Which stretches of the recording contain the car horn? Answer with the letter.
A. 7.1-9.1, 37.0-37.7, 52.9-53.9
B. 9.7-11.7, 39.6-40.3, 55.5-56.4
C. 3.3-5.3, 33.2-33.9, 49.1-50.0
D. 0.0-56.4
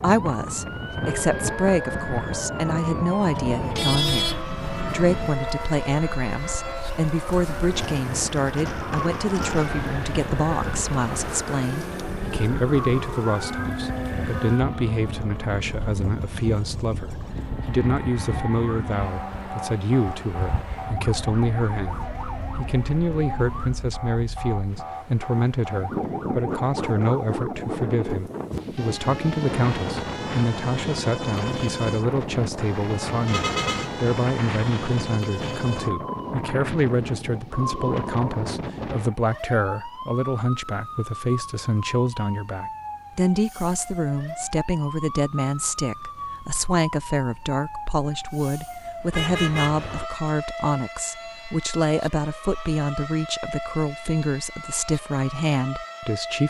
C.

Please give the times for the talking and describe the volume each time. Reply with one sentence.
The talking can be heard from 0.0 to 56.4 s, at a steady volume.